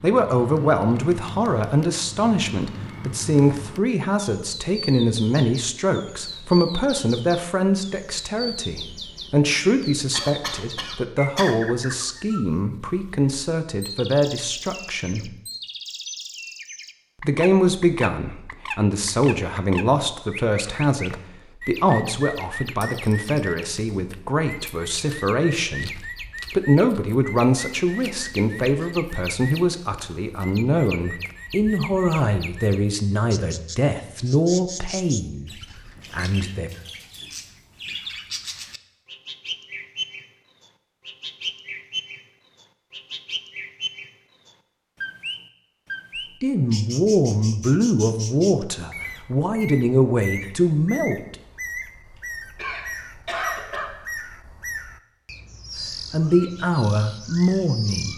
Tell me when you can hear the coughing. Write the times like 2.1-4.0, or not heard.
10.1-11.6, 52.5-53.9.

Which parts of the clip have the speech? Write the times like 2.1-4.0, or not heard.
0.0-15.3, 17.2-36.7, 46.4-51.4, 56.1-58.1.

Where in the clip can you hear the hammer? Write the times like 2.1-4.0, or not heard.
not heard.